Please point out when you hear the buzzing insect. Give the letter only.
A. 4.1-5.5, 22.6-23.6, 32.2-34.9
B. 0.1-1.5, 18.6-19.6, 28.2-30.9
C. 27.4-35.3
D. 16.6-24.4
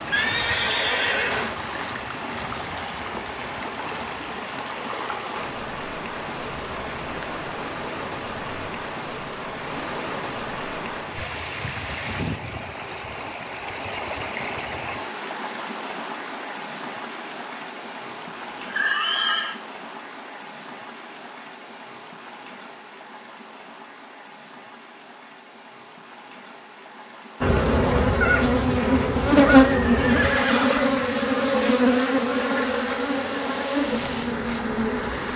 C.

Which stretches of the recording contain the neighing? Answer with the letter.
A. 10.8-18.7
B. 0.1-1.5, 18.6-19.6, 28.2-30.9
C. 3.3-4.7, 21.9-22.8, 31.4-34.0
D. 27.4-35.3
B.